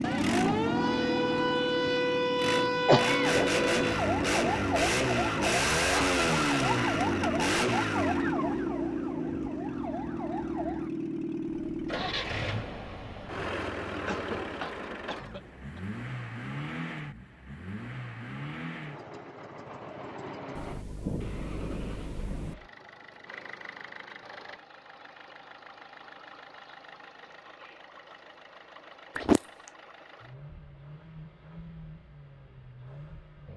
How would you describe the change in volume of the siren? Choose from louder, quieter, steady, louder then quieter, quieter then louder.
quieter.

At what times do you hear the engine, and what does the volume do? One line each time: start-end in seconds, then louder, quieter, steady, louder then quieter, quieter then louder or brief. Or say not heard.
0.0-33.5 quieter.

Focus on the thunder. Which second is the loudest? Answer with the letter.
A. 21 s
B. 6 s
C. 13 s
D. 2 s
A.